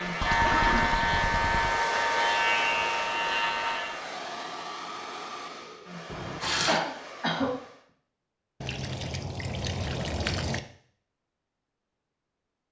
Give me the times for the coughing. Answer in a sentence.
You can hear the coughing from 0.4 to 1.0 s and from 6.7 to 7.5 s.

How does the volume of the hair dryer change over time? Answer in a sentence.
The volume of the hair dryer goes down.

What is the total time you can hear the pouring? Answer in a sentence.
The pouring can be heard for 4 seconds in total.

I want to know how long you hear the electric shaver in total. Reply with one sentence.
The electric shaver can be heard for 4 seconds in total.